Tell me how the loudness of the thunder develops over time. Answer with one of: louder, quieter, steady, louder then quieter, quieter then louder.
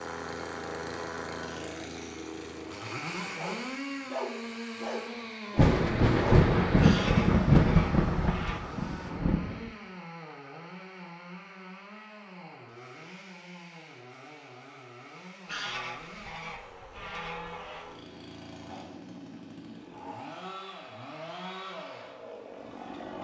quieter.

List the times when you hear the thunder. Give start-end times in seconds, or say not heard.
5.5-9.7.